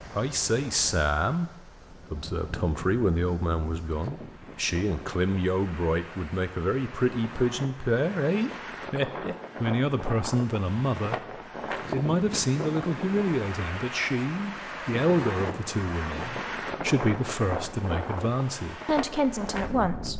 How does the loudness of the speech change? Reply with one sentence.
The volume of the speech stays about the same.